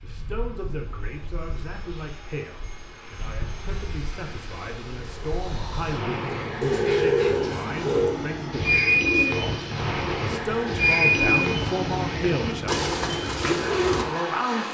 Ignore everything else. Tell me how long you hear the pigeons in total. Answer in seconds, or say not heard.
8 s.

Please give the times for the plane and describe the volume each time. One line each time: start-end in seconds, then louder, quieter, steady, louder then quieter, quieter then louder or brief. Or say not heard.
0.0-14.6 louder.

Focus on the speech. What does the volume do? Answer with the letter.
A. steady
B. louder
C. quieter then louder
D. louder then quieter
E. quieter
B.